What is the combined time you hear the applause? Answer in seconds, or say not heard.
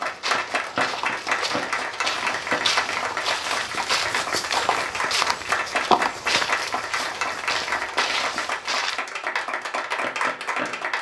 11 s.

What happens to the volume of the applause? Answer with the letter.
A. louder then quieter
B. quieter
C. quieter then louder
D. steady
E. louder
D.